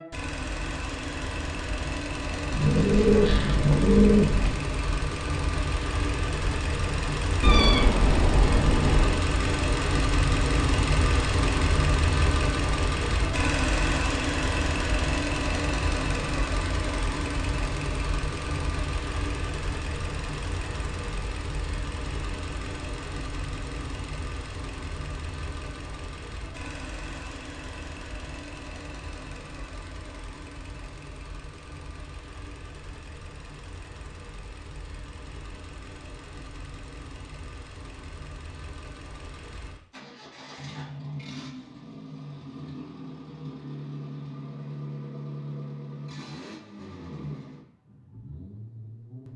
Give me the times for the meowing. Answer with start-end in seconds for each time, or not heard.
7.4-9.2.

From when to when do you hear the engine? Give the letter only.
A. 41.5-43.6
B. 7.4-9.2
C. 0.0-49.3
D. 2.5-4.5
C.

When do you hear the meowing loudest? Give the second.
8 s.